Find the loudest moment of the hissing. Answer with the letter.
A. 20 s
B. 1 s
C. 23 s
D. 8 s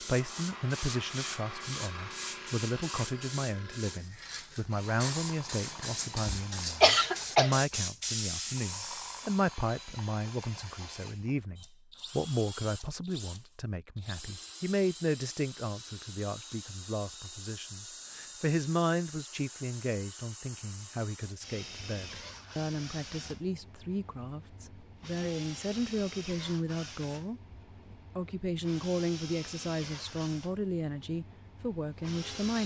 D.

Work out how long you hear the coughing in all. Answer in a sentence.
The coughing can be heard for 2 seconds in total.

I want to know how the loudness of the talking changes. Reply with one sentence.
The volume of the talking stays about the same.